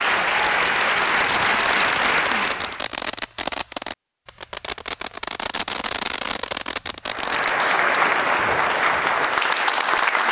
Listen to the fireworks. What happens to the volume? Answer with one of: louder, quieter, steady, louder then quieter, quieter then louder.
steady.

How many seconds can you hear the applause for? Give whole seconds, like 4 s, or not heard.
6 s.